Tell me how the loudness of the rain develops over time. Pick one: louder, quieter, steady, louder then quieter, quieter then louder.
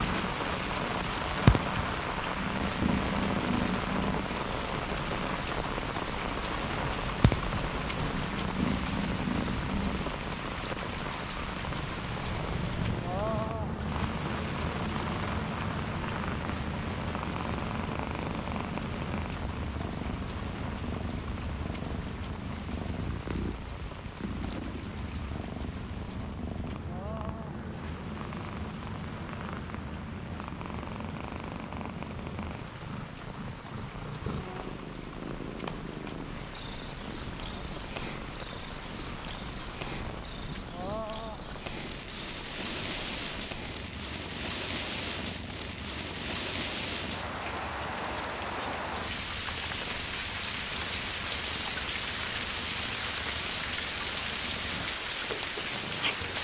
quieter then louder.